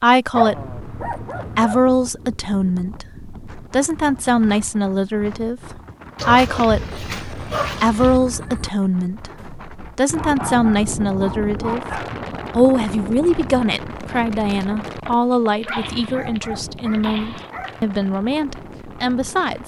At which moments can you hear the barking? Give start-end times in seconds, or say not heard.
0.3-1.8, 6.2-8.2, 10.2-12.2, 15.1-17.8.